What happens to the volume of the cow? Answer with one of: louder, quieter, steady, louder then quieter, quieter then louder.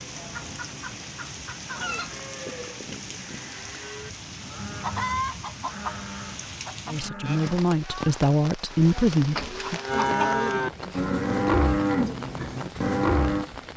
louder.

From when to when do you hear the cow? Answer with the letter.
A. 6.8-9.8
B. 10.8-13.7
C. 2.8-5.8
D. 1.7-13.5
D.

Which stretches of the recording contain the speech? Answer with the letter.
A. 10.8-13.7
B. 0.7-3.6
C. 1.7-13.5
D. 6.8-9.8
D.